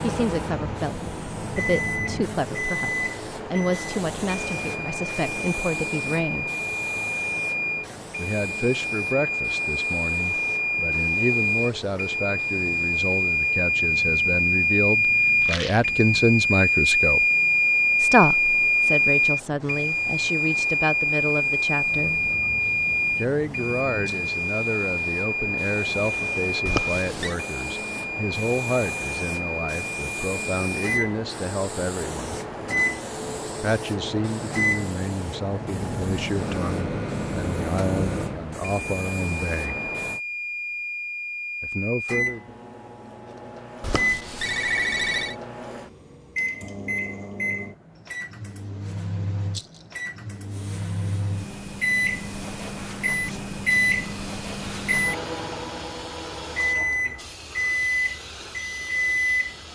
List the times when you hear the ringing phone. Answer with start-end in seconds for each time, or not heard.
26.6-27.4, 43.8-45.4.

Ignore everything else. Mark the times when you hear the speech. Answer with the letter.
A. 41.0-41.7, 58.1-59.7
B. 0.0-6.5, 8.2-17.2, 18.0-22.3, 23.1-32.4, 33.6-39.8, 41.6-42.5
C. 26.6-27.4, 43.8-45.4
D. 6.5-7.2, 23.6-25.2
B.